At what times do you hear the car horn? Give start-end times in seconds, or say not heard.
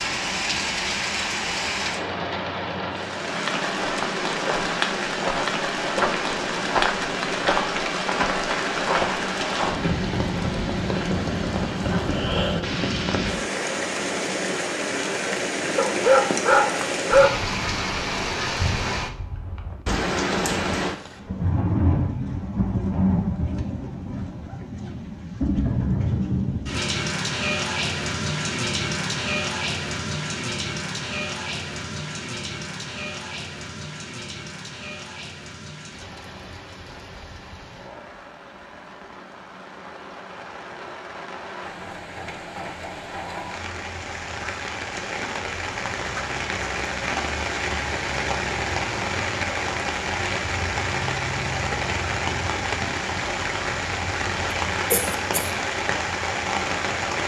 not heard.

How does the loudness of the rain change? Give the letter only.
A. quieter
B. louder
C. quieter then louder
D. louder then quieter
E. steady
C.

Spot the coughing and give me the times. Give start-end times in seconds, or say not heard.
11.8-12.7, 54.9-55.5.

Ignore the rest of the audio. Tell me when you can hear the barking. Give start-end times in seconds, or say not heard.
15.8-17.4.